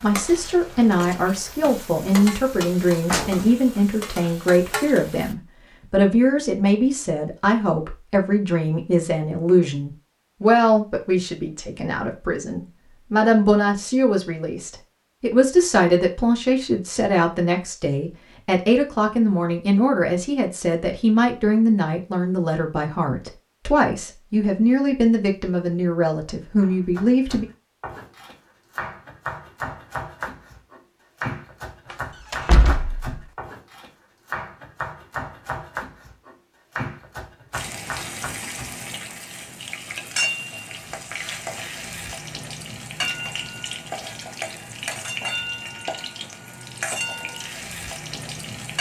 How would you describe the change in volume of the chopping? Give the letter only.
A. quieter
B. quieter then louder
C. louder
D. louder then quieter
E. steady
E.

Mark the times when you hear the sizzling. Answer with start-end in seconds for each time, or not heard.
0.0-5.3, 37.5-48.7.